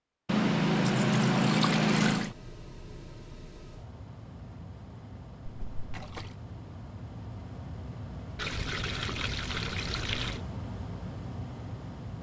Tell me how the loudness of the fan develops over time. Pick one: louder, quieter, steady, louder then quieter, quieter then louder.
louder.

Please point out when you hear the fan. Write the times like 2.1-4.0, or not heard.
2.1-12.1.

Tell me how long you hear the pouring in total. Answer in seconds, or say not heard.
5 s.